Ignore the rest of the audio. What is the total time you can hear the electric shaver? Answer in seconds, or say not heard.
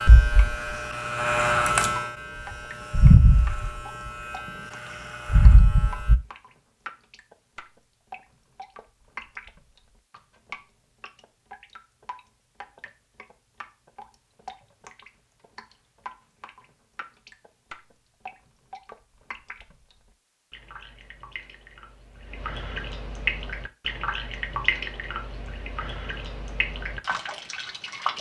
5 s.